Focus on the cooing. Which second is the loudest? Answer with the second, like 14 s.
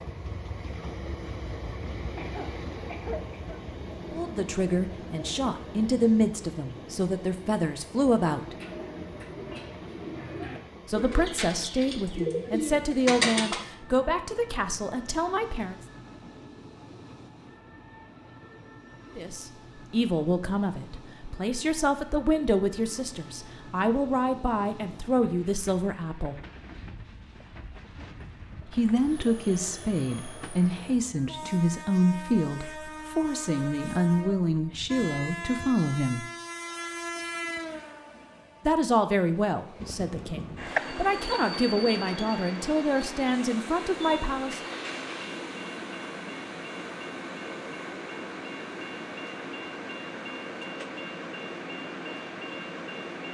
13 s.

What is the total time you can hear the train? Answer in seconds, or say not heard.
53 s.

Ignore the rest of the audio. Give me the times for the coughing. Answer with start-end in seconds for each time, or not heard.
2.1-3.6.